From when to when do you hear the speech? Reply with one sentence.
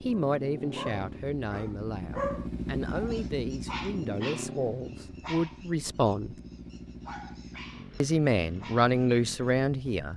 You can hear the speech from 0.0 to 6.3 s and from 8.0 to 10.1 s.